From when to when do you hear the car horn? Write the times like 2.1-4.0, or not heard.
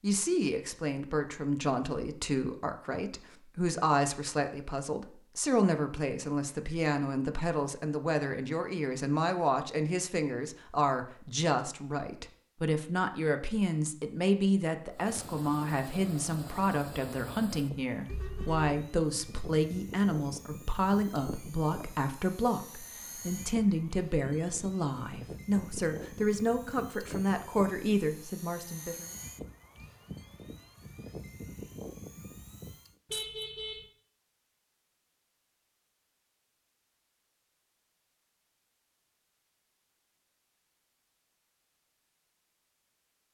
18.1-18.8, 33.0-33.9.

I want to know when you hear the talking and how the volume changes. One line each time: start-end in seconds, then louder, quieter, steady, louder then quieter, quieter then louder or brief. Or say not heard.
0.0-29.1 steady.